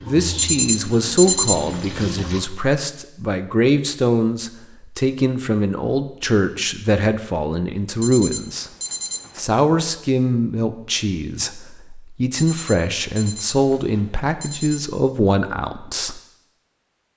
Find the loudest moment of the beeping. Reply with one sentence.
The loudest moment of the beeping is at 1 second.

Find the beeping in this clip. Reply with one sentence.
You can hear the beeping from 0.3 to 2.0 s, from 8.0 to 9.4 s and from 12.3 to 14.8 s.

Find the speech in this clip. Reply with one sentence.
The speech can be heard from 0.0 to 8.7 s and from 9.3 to 16.2 s.